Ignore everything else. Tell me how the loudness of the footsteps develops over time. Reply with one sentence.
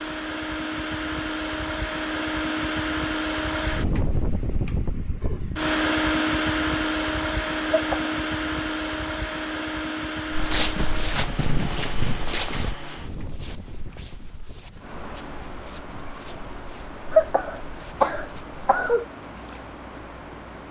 The loudness of the footsteps goes down.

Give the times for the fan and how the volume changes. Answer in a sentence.
The fan can be heard from 0.0 to 20.6 s, getting quieter.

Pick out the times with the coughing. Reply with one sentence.
You can hear the coughing from 7.7 to 8.2 s and from 17.1 to 19.1 s.